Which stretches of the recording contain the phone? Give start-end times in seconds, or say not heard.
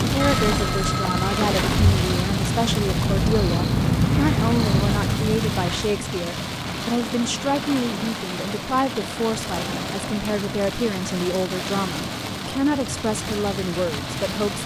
0.2-1.9.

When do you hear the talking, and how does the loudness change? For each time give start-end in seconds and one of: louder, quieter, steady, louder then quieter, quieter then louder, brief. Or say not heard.
0.0-14.6 steady.